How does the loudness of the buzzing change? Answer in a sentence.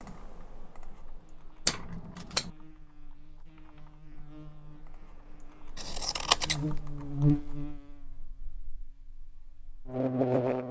The loudness of the buzzing goes up, then down.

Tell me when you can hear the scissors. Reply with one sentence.
You can hear the scissors from 1.6 to 2.5 s and from 5.8 to 6.6 s.